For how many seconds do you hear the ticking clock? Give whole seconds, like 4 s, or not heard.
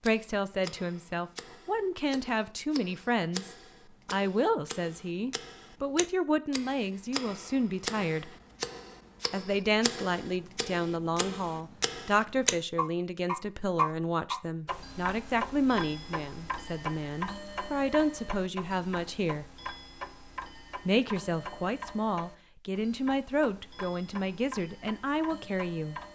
26 s.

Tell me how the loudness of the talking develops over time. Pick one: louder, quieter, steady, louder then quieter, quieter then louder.
steady.